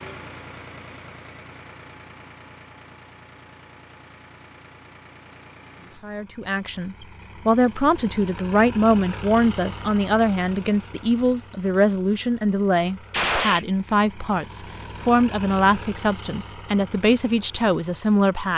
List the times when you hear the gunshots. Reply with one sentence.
The gunshots can be heard from 13.1 to 13.7 s.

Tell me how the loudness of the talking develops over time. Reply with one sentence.
The volume of the talking stays about the same.